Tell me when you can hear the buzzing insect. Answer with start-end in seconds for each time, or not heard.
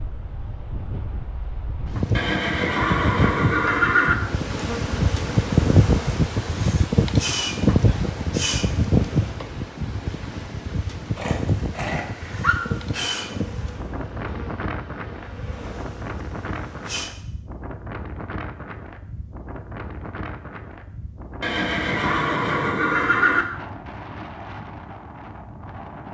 4.2-9.3, 12.2-17.1.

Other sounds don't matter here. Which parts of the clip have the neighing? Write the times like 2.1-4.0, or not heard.
2.1-4.2, 11.2-12.6, 21.4-23.4.